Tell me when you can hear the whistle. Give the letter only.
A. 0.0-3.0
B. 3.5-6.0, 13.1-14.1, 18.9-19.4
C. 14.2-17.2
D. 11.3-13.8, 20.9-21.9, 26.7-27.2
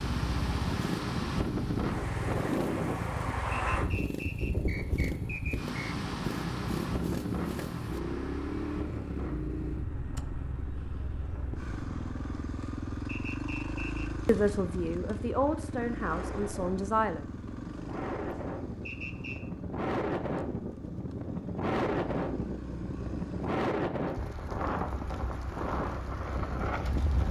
B.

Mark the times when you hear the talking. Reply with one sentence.
You can hear the talking from 14.2 to 17.2 s.